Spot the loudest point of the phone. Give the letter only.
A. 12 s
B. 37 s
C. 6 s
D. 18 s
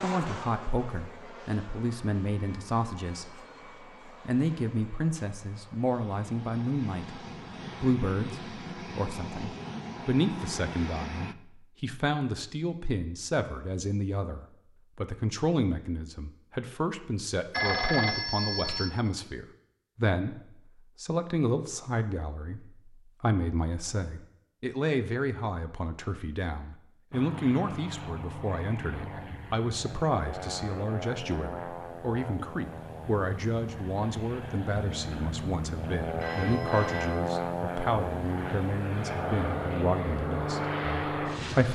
D.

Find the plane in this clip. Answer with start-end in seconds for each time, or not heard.
0.0-11.3, 27.1-41.6.